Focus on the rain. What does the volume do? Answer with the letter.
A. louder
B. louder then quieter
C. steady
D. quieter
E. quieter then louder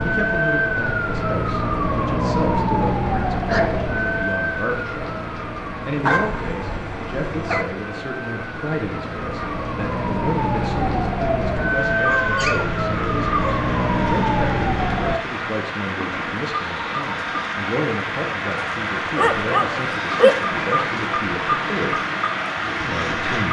A.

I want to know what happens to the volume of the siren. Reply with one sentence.
The volume of the siren goes down, then up.